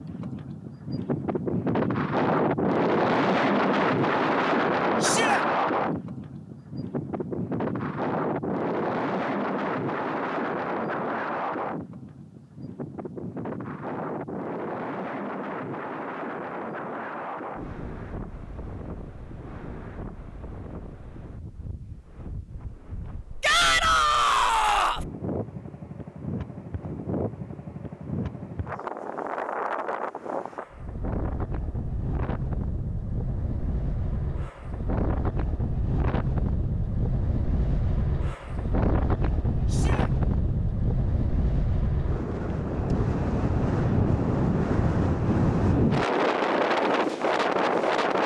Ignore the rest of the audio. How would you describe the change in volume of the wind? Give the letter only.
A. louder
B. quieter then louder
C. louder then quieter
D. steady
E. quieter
B.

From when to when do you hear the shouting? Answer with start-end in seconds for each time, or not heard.
5.0-5.4, 23.4-25.1, 39.6-40.1.